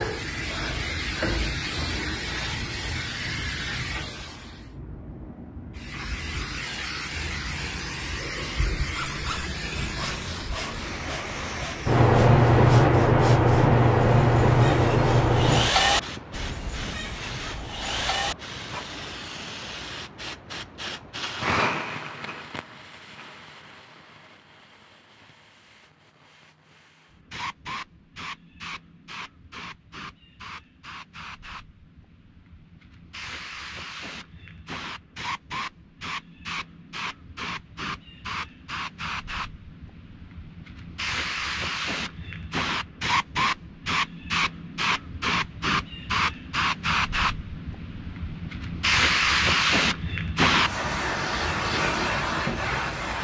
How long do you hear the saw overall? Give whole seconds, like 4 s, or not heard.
10 s.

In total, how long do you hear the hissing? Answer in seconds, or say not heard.
53 s.